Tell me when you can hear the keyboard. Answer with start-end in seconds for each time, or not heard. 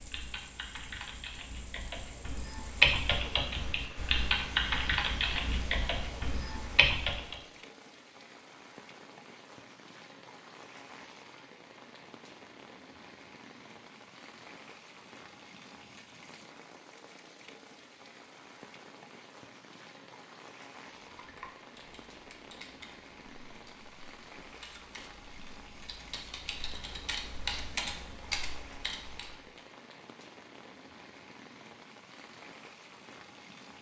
0.0-7.4, 21.1-29.6.